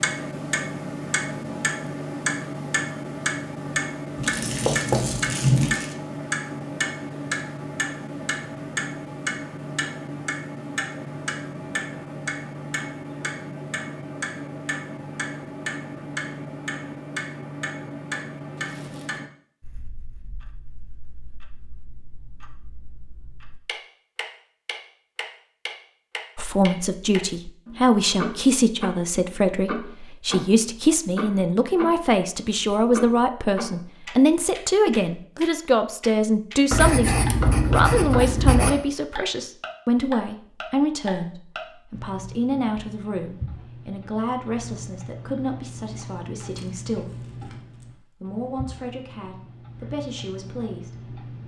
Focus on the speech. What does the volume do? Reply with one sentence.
The volume of the speech goes down.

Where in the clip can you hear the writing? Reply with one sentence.
You can hear the writing from 4.2 to 5.8 s and from 36.7 to 38.7 s.